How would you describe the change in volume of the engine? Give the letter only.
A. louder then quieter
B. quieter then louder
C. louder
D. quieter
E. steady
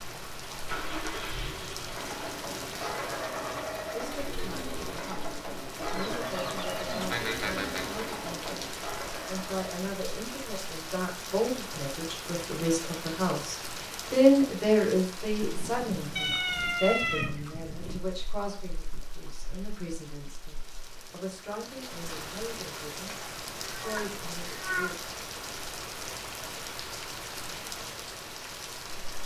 E.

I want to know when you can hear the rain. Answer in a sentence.
You can hear the rain from 0.0 to 29.2 s.